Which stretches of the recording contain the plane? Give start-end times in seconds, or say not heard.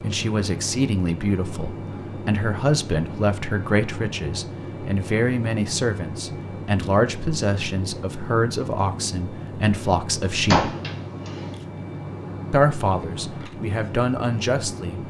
0.0-15.0.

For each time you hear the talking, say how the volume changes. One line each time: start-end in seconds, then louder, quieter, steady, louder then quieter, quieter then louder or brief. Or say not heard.
0.0-10.7 steady
12.5-15.0 brief.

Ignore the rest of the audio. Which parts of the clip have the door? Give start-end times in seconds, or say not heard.
10.5-11.3.